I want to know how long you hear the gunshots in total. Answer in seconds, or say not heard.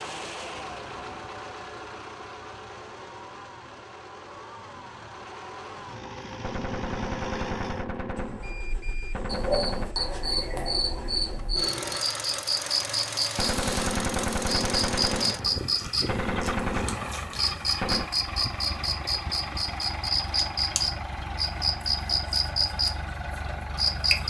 8 s.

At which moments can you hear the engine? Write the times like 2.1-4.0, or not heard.
0.0-24.2.